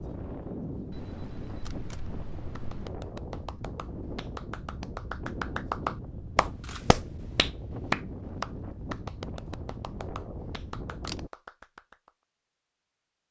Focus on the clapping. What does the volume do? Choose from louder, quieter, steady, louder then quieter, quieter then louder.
louder then quieter.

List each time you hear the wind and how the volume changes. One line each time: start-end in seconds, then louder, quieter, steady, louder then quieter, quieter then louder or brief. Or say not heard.
0.0-11.3 steady.